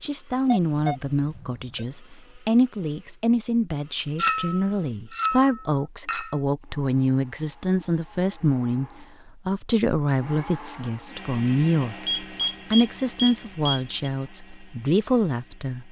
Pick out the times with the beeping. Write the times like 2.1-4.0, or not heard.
0.5-1.9, 12.1-14.1.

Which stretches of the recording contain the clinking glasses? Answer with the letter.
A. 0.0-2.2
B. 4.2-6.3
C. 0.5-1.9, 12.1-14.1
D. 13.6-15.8
B.